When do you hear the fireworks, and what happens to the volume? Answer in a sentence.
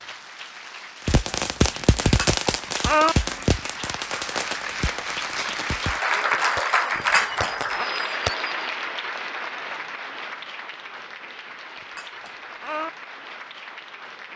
You can hear the fireworks from 1.1 to 8.7 s, getting quieter.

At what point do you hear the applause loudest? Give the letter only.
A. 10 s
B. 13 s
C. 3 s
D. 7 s
D.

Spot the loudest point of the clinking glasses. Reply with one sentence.
The volume of the clinking glasses peaks at 3 seconds.